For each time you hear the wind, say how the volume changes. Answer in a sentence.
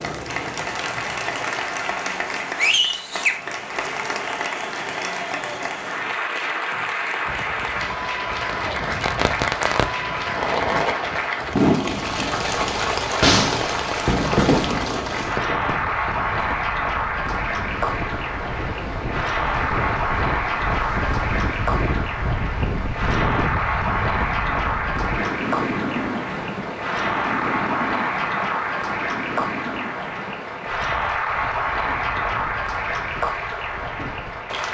The wind can be heard from 7.2 to 34.6 s, getting louder then quieter.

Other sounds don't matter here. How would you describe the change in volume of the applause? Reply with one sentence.
The loudness of the applause stays about the same.